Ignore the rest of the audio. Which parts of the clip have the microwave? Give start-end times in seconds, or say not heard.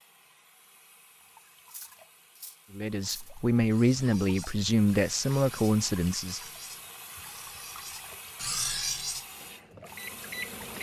9.3-10.7.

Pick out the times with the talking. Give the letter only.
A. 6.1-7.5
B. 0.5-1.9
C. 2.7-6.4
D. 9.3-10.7
C.